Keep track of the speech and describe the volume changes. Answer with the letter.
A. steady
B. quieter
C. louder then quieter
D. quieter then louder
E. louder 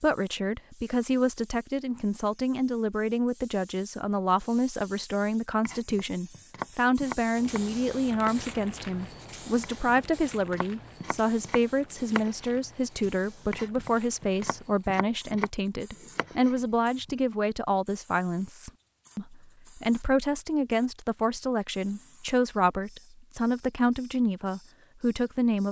A.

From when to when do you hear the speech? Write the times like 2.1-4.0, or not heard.
0.0-25.6.